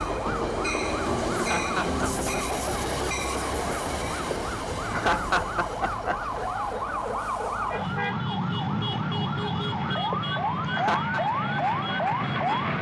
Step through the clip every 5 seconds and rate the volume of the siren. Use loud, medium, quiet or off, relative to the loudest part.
medium, loud, loud.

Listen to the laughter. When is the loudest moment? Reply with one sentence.
The loudest moment of the laughter is at 5 seconds.